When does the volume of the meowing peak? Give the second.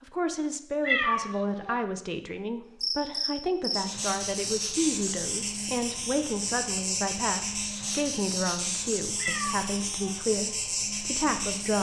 1 s.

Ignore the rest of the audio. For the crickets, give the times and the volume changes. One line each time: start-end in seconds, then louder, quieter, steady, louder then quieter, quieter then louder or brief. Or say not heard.
2.8-11.7 steady.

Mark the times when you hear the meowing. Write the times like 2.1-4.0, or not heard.
0.8-1.8, 9.2-10.2.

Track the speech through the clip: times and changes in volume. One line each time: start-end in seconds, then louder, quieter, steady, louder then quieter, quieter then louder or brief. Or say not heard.
0.0-11.7 steady.